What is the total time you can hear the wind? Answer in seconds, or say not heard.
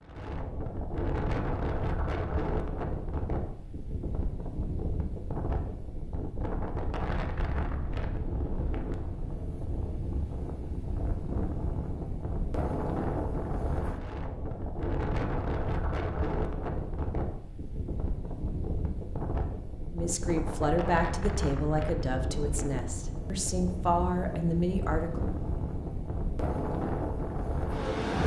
28 s.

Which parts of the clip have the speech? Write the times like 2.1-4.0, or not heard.
19.9-25.2.